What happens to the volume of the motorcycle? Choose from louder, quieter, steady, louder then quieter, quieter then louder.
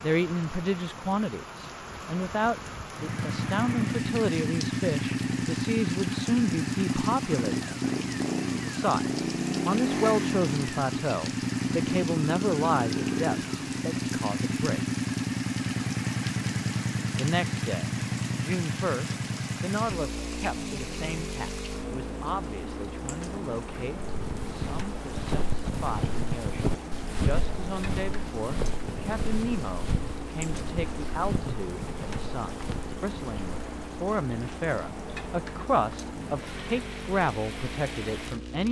quieter.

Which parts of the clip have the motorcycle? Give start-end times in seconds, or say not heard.
2.9-38.6.